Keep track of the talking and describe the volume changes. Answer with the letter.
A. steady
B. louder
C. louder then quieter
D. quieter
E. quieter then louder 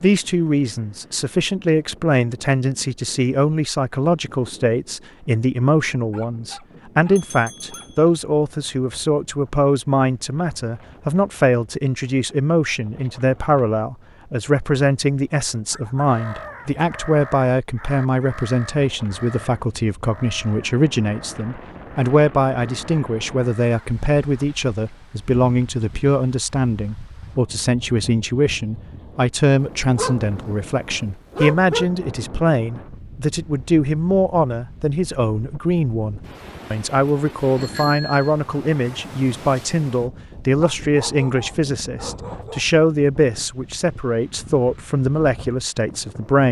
A.